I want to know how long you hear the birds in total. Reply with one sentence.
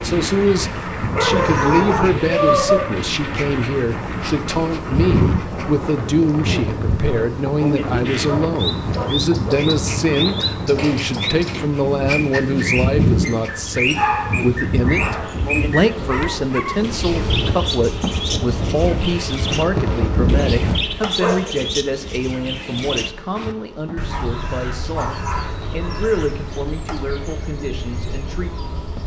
The birds can be heard for 21 seconds in total.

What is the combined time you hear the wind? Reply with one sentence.
The wind can be heard for 21 seconds in total.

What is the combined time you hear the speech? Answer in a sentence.
The speech can be heard for 29 seconds in total.